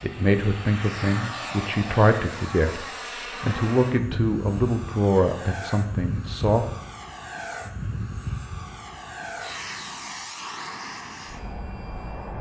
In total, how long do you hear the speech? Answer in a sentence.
The speech can be heard for 7 seconds in total.